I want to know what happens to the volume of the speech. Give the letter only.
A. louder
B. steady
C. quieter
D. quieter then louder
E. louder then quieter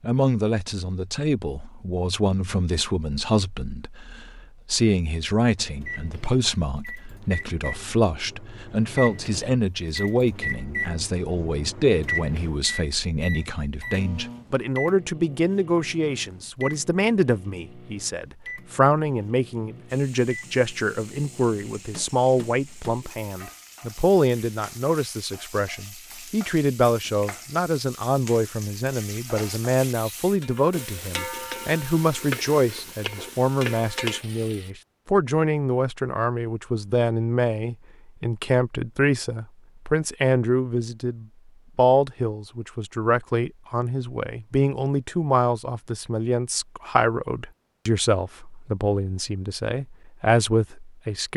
B.